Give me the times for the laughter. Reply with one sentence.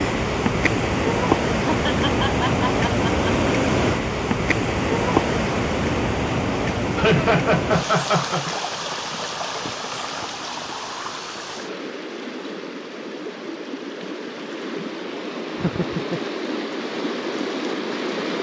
The laughter can be heard from 1.6 to 3.5 s, from 7.0 to 8.4 s and from 15.6 to 16.2 s.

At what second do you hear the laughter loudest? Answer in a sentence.
The volume of the laughter peaks at 7 seconds.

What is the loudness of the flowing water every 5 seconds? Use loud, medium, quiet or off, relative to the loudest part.
loud, loud, medium, medium.